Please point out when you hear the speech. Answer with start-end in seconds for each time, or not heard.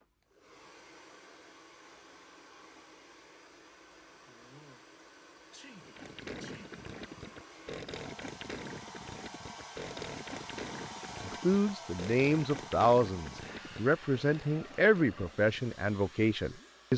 11.2-16.9.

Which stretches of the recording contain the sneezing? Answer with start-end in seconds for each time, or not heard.
5.5-6.7.